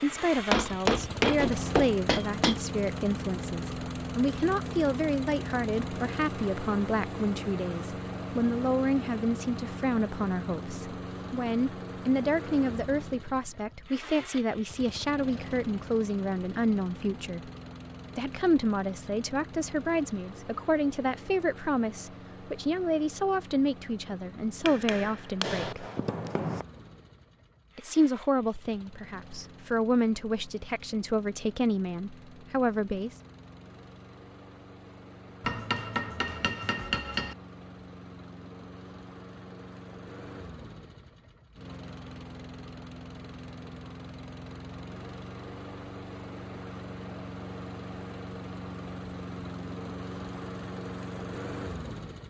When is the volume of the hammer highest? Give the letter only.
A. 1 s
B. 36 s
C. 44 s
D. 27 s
A.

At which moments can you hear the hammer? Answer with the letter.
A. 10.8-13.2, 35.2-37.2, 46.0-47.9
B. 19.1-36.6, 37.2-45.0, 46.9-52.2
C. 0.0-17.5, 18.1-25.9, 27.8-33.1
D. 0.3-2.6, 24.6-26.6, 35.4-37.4
D.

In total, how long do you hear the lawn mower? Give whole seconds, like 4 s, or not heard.
52 s.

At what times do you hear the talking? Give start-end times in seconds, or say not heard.
0.0-17.5, 18.1-25.9, 27.8-33.1.